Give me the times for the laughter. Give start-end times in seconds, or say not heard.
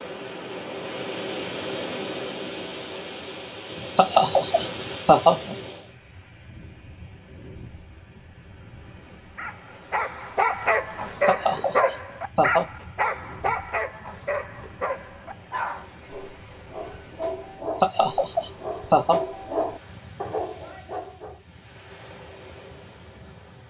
4.0-5.5, 11.2-12.7, 17.8-19.2.